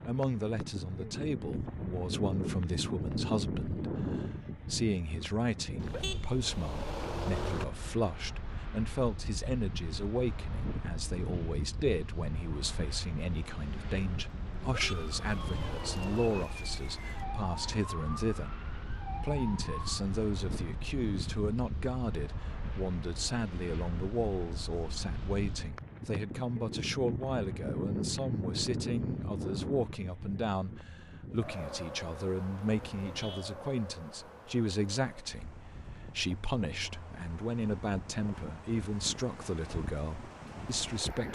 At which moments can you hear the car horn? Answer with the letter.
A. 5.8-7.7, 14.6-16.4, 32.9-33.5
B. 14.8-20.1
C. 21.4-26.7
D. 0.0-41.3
A.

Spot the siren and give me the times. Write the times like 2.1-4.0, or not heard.
14.8-20.1.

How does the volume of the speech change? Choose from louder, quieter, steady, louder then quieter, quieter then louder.
steady.